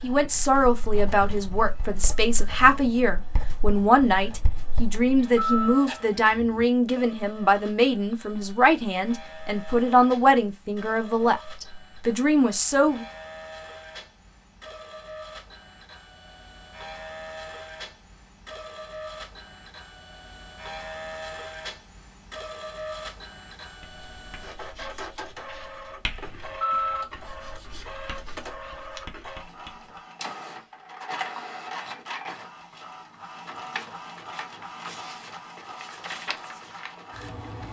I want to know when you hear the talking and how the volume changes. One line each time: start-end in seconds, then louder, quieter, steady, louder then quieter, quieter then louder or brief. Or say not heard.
0.0-13.1 steady.